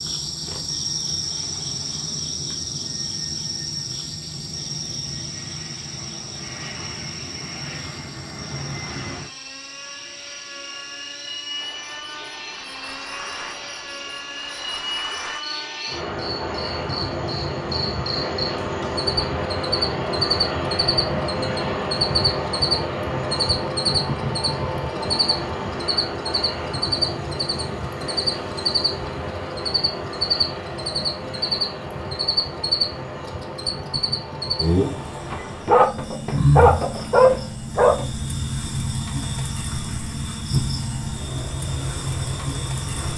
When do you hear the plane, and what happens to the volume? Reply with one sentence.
The plane can be heard from 0.0 to 43.1 s, getting louder then quieter.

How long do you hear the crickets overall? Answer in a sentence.
The crickets can be heard for 43 seconds in total.